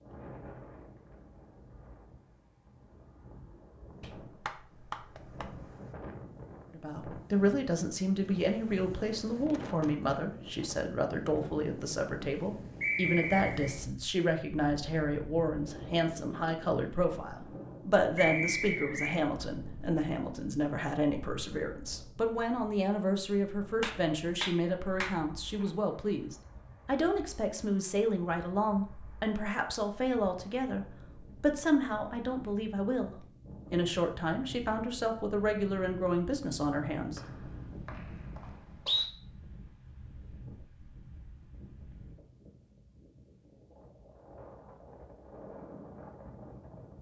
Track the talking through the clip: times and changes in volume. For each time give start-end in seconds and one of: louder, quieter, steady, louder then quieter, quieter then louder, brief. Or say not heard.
6.7-37.2 steady.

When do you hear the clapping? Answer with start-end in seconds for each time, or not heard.
4.0-5.7, 23.8-25.7.